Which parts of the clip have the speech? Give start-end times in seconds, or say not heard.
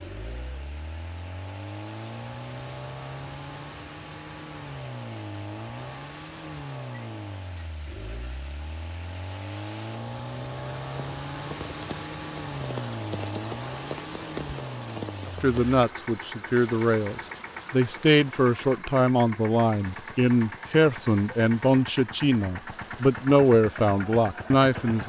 15.2-25.0.